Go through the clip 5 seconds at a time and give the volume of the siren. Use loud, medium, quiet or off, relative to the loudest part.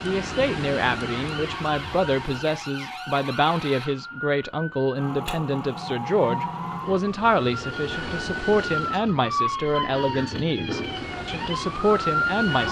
medium, loud, loud.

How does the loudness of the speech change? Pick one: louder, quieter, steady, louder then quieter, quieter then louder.
steady.